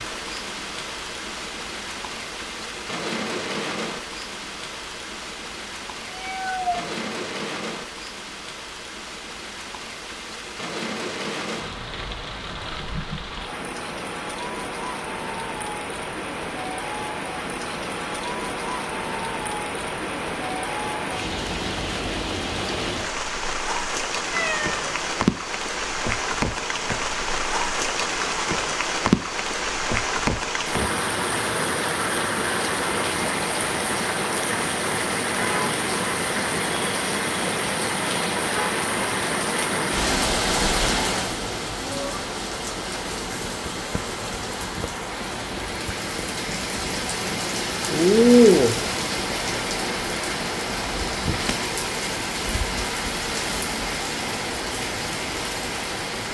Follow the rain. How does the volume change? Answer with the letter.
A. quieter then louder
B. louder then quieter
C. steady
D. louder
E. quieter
D.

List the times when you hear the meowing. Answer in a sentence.
The meowing can be heard from 6.0 to 6.8 s, from 24.3 to 25.2 s and from 41.4 to 42.3 s.